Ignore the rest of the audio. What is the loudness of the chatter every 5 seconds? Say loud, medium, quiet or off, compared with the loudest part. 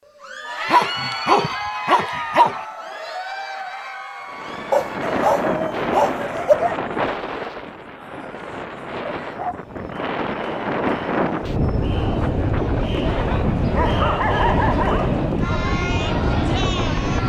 loud, quiet, loud, loud.